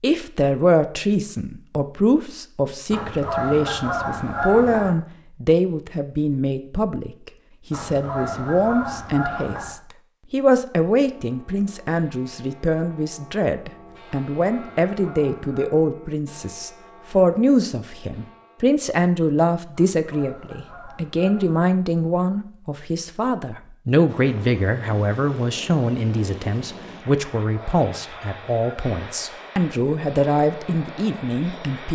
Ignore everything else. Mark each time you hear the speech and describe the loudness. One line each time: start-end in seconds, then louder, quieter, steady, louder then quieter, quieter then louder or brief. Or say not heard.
0.0-31.9 steady.